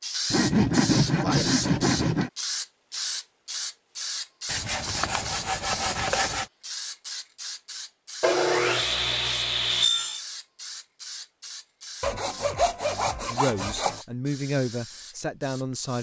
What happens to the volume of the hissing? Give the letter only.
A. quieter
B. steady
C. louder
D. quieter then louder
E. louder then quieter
A.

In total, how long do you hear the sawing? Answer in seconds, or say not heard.
8 s.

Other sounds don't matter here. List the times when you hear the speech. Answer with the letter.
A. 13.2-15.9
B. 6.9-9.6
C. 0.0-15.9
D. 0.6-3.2
A.